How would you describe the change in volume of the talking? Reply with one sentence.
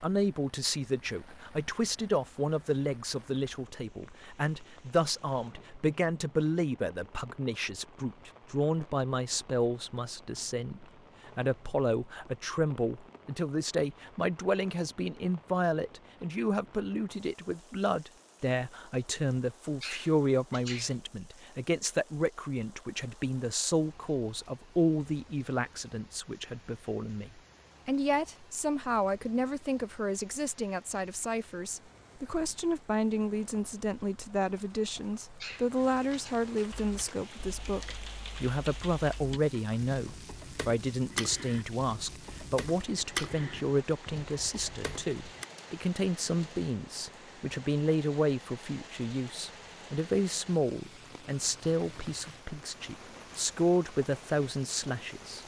The volume of the talking stays about the same.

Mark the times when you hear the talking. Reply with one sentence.
The talking can be heard from 0.0 to 55.4 s.